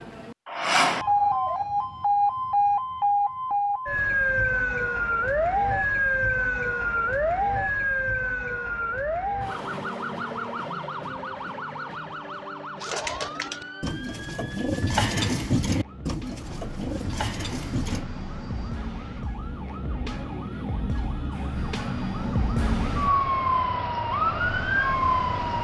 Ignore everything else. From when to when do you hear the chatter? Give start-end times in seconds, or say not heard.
not heard.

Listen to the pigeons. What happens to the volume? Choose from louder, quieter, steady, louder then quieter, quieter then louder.
louder then quieter.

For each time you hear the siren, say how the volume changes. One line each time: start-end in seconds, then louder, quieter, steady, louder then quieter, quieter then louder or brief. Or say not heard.
0.0-25.5 quieter then louder.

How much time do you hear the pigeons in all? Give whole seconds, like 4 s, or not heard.
5 s.